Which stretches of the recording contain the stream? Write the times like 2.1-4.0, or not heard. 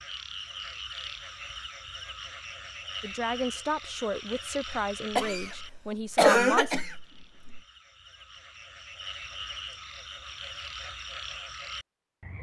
not heard.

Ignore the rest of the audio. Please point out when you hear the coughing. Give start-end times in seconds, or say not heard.
5.2-7.6.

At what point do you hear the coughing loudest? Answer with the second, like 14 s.
6 s.